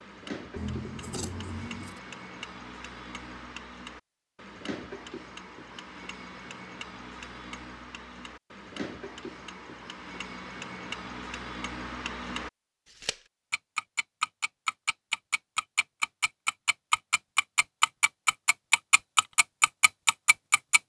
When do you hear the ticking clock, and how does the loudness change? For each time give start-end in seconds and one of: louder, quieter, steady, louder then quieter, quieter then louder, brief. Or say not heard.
0.0-20.8 louder.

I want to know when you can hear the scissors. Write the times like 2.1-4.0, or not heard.
0.6-2.0.